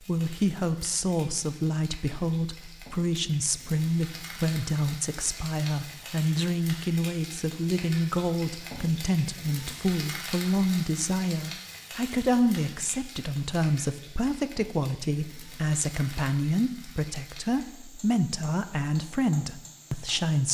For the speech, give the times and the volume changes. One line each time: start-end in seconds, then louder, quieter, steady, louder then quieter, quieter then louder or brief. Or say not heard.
0.0-20.4 steady.